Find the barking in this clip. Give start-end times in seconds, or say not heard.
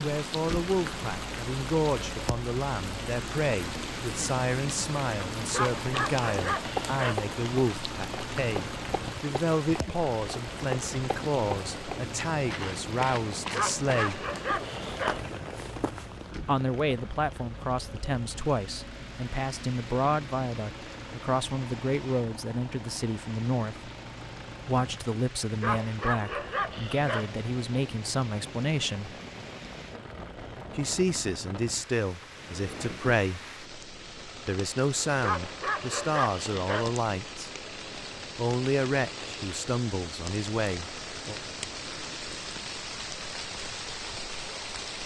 5.5-7.2, 13.5-15.2, 25.6-27.3, 35.2-37.0.